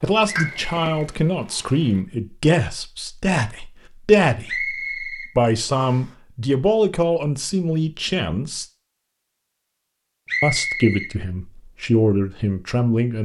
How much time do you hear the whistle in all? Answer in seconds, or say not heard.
4 s.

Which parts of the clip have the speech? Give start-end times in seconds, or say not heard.
0.0-8.7, 10.4-13.1.